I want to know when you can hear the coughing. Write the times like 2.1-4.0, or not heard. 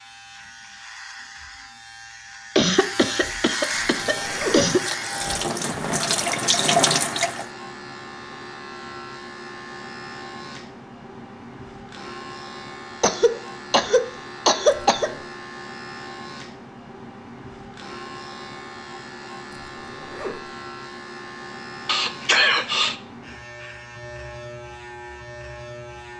2.5-4.8, 13.0-15.1, 21.9-22.9.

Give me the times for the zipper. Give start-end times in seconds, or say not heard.
3.7-4.8, 14.9-15.3, 19.6-20.5.